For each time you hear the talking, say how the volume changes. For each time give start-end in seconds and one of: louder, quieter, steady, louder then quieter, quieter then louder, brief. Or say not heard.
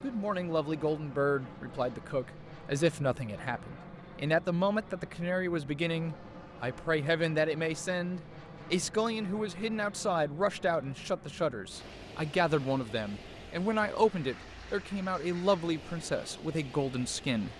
0.0-17.5 steady.